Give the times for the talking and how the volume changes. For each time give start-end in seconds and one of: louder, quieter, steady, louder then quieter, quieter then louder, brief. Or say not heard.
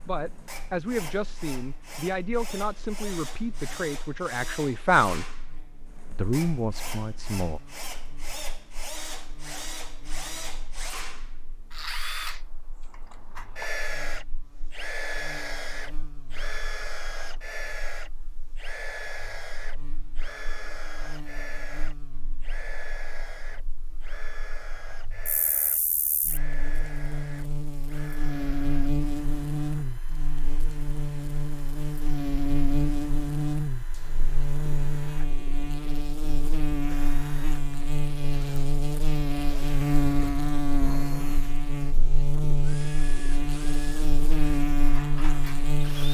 0.1-5.2 steady
6.1-7.6 brief.